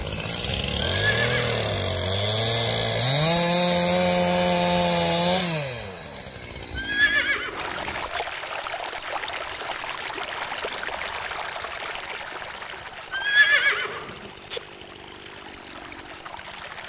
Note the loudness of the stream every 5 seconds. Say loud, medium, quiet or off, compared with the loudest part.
off, loud, loud, medium.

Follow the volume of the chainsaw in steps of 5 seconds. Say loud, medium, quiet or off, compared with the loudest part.
loud, medium, quiet, quiet.